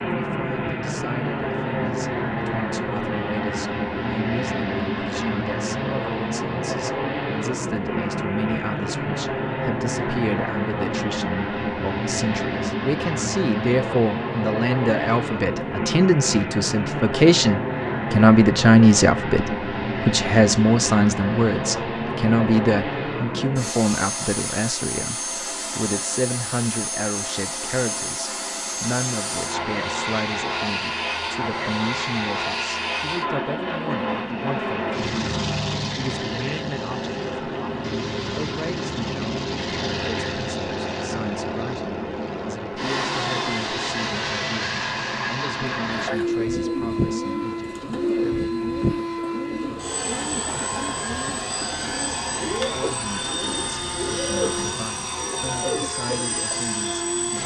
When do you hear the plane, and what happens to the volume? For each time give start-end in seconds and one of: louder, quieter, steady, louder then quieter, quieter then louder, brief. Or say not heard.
0.0-57.4 steady.